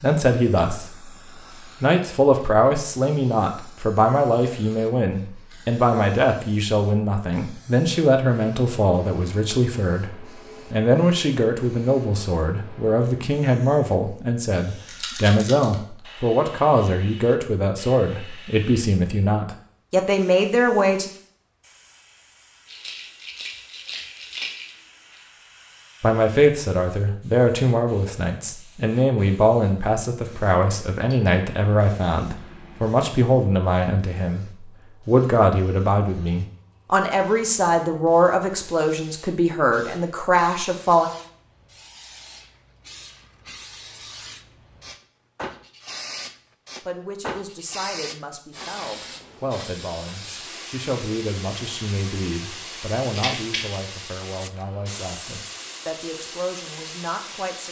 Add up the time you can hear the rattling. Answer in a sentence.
The rattling can be heard for 4 seconds in total.